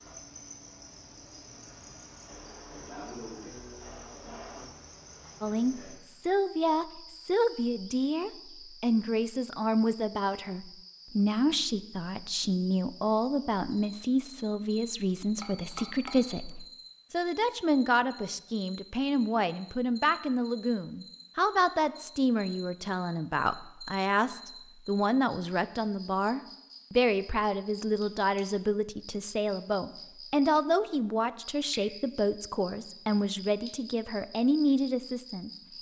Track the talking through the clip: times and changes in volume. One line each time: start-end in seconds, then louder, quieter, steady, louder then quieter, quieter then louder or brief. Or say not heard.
5.4-35.5 steady.